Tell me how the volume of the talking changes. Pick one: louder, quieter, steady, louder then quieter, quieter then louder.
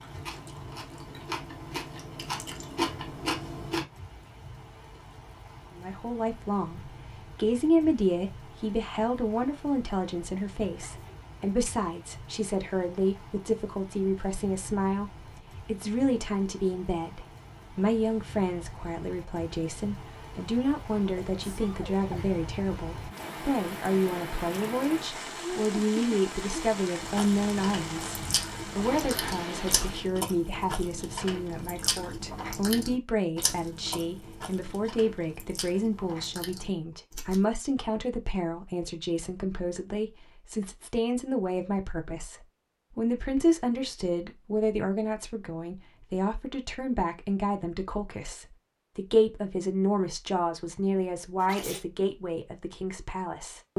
steady.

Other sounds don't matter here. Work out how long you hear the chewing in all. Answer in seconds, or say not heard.
14 s.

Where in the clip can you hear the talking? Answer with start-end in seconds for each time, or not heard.
5.8-53.7.